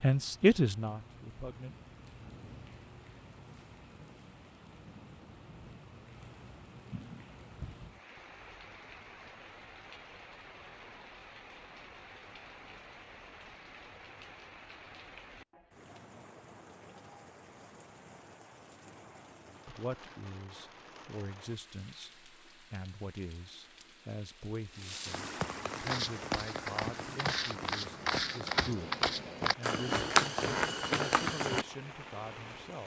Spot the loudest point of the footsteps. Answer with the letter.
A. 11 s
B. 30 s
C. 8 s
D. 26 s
B.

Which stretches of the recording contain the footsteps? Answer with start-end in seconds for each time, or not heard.
25.8-31.6.